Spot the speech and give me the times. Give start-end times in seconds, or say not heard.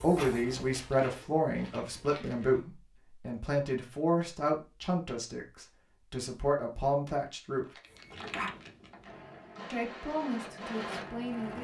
0.0-7.7, 9.7-11.5.